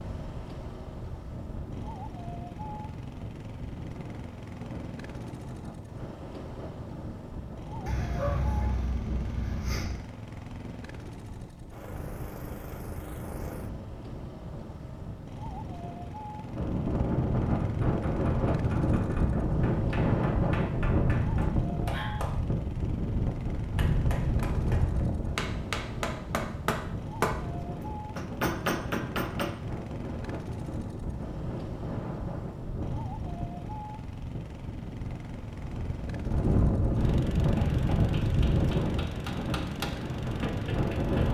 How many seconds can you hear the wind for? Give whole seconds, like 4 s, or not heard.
41 s.